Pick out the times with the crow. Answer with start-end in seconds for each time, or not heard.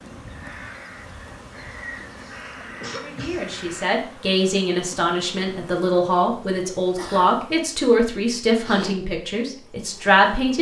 0.0-3.9.